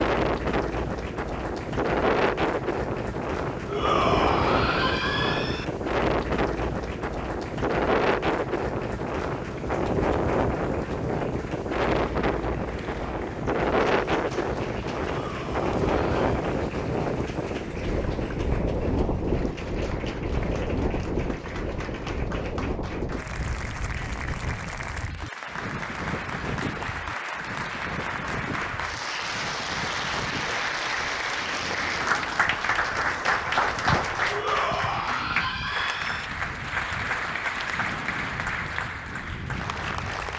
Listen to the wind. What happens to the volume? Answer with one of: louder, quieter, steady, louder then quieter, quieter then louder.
quieter.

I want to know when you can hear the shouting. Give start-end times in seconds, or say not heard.
3.6-5.7, 15.1-16.4, 34.3-36.3.